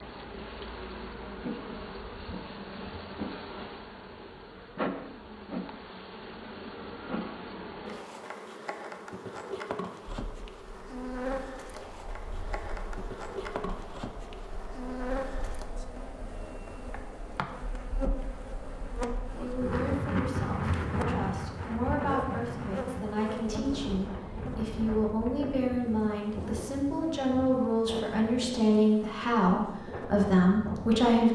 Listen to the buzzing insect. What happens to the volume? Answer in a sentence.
The volume of the buzzing insect goes down.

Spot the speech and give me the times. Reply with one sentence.
The speech can be heard from 19.4 to 31.3 s.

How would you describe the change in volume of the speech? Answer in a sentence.
The volume of the speech goes up.